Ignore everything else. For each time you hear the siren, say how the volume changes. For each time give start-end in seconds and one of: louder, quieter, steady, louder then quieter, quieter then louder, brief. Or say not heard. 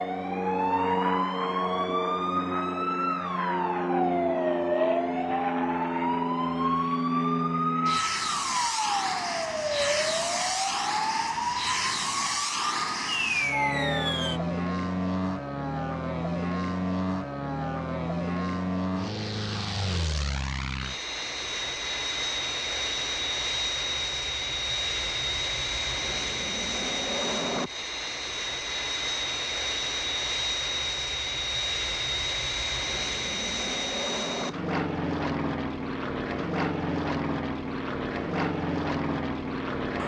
0.0-14.4 steady.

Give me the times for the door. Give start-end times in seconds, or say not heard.
not heard.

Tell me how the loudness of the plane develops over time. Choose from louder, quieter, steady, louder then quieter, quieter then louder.
steady.